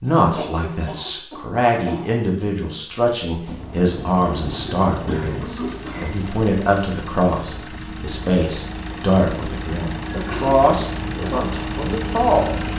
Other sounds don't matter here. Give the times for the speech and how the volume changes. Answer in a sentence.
The speech can be heard from 0.0 to 12.6 s, at a steady volume.